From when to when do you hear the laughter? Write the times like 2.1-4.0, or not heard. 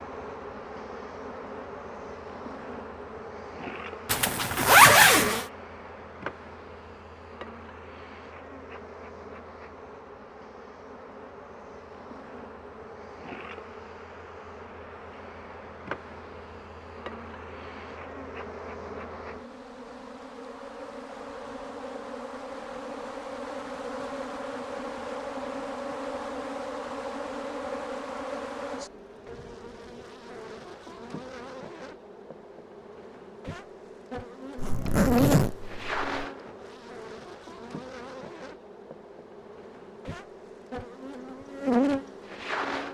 not heard.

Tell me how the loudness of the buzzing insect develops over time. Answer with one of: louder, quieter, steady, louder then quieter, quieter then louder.
louder.